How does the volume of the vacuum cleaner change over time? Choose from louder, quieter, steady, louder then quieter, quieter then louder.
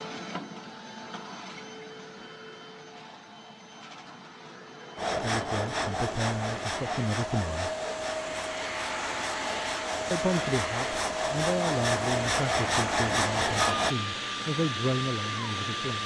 louder.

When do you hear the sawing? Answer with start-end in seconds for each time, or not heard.
5.0-13.9.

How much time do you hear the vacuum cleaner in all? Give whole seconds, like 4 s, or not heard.
16 s.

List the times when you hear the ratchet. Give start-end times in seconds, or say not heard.
not heard.